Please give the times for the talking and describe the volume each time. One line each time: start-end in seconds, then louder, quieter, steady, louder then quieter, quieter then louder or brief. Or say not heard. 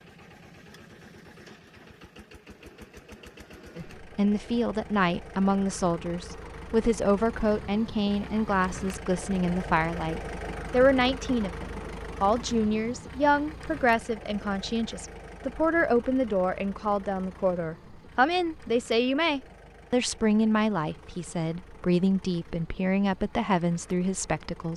3.8-24.7 steady.